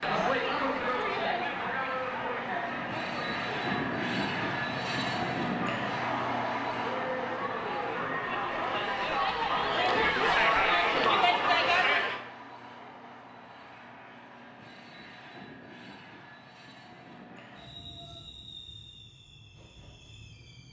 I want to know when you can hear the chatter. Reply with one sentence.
The chatter can be heard from 0.0 to 12.2 s.